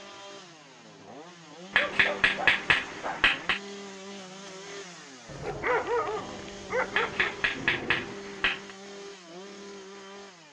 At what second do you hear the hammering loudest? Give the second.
3 s.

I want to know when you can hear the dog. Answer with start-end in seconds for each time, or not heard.
1.9-3.3, 5.2-8.2.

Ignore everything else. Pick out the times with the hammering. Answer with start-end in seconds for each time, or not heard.
1.7-3.6, 6.9-8.8.